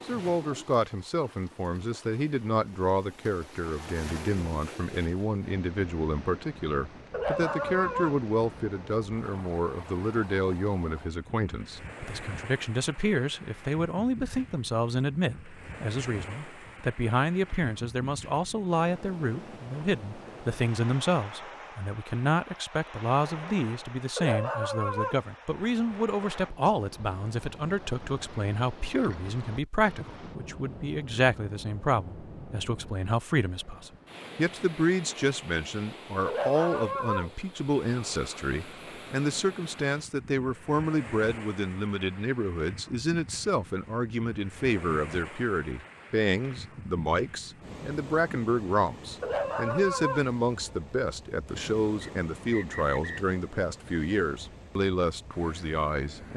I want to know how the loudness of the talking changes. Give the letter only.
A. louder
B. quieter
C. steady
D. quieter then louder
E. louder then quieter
C.